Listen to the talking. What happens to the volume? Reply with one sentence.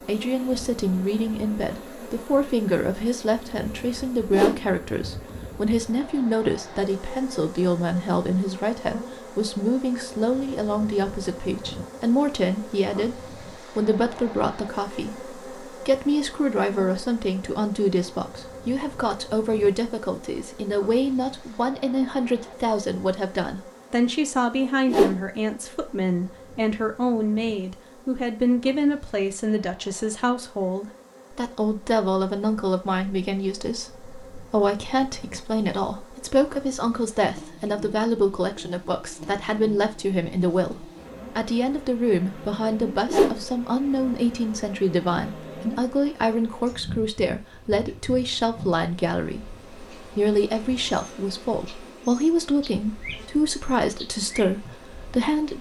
The loudness of the talking stays about the same.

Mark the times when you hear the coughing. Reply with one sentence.
You can't hear the coughing here.